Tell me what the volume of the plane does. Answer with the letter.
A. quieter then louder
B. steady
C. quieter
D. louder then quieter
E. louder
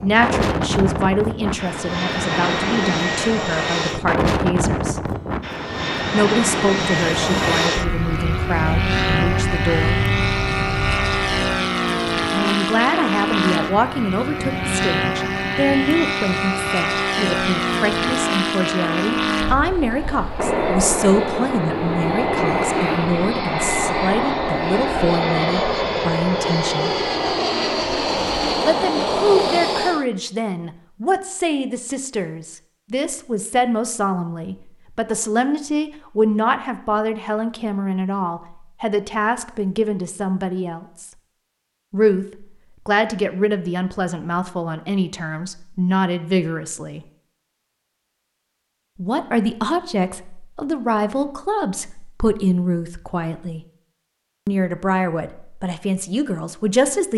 B.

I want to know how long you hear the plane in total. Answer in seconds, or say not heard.
30 s.